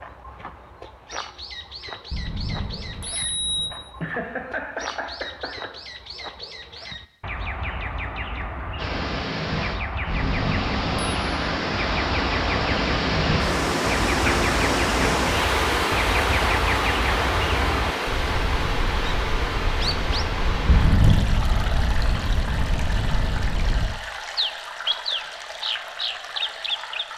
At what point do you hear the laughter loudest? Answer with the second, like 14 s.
4 s.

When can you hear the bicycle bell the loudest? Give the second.
21 s.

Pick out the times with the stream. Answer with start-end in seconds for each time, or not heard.
8.8-27.1.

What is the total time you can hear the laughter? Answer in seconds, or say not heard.
2 s.